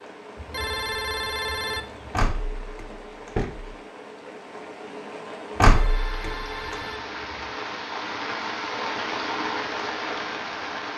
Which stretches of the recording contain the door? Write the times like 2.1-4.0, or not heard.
2.1-3.8, 5.6-6.8.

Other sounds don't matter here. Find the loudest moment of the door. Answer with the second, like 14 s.
6 s.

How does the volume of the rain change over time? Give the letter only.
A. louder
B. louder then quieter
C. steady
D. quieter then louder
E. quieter
A.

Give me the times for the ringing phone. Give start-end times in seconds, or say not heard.
0.3-2.2, 5.7-7.2.